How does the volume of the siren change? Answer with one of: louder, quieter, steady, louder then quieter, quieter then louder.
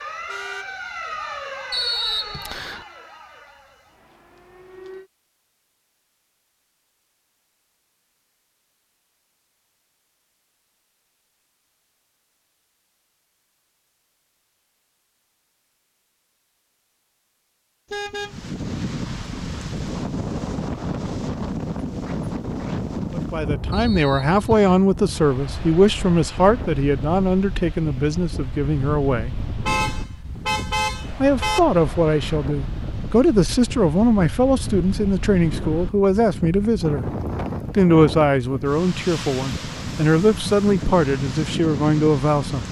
quieter.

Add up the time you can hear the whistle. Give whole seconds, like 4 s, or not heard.
2 s.